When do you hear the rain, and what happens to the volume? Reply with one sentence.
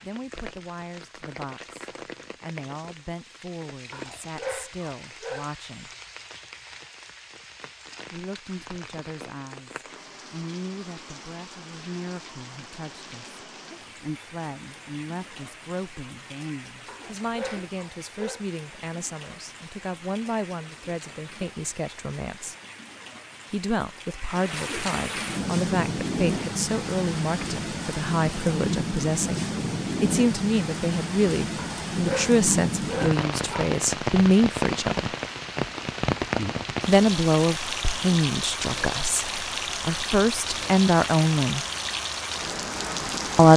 You can hear the rain from 0.0 to 43.5 s, getting louder.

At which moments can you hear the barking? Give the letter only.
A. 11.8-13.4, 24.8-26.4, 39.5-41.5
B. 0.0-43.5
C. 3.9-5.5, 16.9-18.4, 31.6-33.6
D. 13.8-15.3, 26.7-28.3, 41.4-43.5
C.